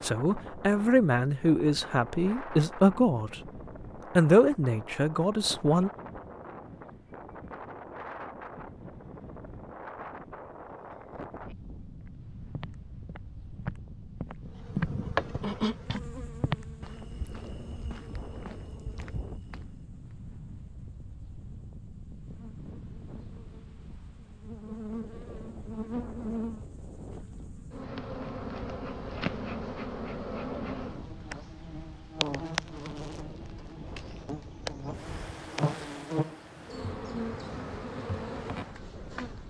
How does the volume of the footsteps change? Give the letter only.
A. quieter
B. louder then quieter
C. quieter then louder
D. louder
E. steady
B.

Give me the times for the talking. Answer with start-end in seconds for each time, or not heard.
0.0-3.4, 4.2-5.9.